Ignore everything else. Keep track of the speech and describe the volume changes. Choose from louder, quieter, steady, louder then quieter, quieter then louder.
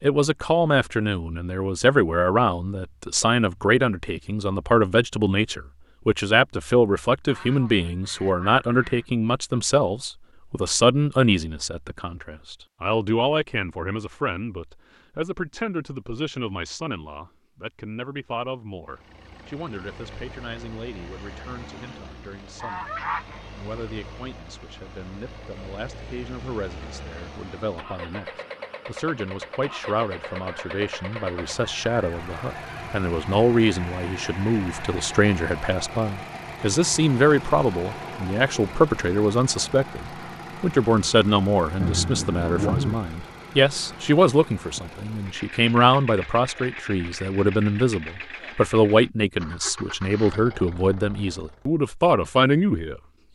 quieter then louder.